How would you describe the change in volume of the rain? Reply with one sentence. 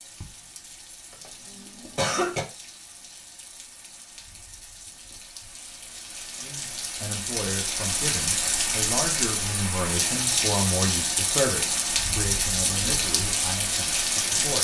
The volume of the rain goes up.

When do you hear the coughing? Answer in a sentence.
You can hear the coughing from 1.1 to 2.5 s.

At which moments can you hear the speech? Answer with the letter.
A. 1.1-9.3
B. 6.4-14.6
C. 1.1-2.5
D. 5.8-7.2
B.